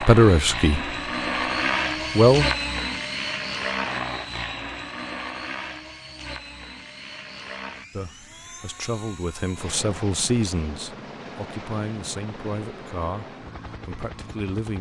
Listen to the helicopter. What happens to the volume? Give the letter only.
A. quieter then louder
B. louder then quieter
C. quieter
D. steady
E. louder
C.